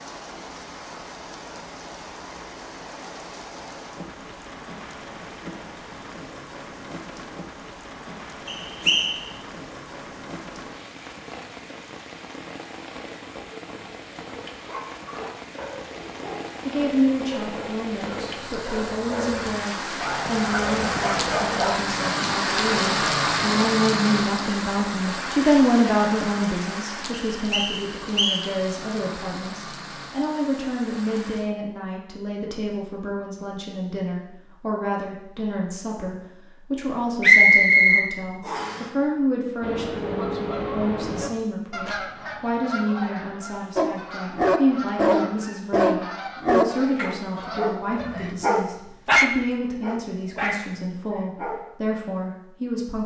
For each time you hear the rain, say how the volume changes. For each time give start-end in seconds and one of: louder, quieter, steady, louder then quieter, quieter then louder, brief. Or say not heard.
0.0-31.6 louder then quieter.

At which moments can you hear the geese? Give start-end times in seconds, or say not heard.
39.6-48.3.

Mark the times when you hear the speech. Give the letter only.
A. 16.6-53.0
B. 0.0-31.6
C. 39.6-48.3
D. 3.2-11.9
A.